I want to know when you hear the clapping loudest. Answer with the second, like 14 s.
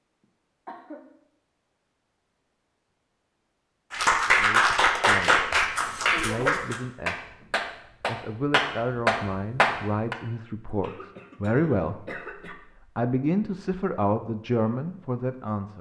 4 s.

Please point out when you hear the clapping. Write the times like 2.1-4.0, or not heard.
3.9-10.2.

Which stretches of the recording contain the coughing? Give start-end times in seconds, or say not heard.
0.2-1.0, 5.7-6.8, 10.7-12.6.